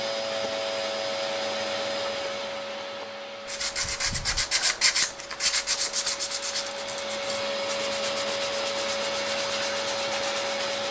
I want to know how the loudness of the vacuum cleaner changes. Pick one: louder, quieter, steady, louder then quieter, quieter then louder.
quieter then louder.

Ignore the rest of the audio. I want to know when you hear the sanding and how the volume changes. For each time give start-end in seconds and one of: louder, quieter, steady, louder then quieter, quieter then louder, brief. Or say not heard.
3.5-10.8 quieter.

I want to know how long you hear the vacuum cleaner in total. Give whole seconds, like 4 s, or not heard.
11 s.